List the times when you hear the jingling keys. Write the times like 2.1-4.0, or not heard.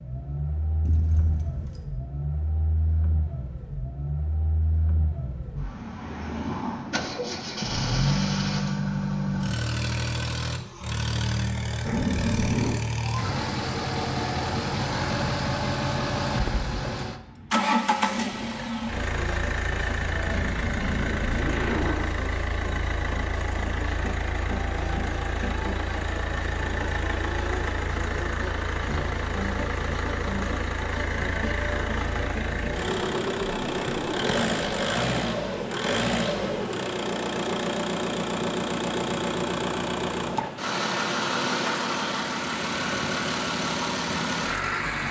0.8-1.9.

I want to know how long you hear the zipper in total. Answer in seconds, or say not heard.
5 s.